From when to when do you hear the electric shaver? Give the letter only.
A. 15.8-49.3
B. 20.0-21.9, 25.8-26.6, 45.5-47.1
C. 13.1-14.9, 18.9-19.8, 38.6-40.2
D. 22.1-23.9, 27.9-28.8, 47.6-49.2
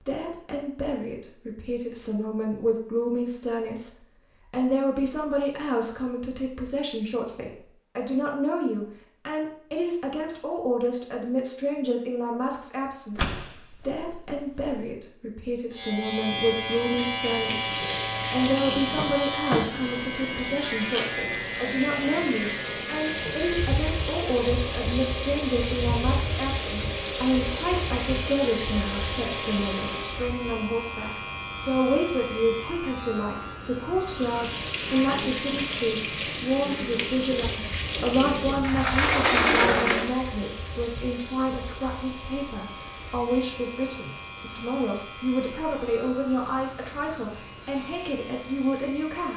A.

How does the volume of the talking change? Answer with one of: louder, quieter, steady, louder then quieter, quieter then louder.
steady.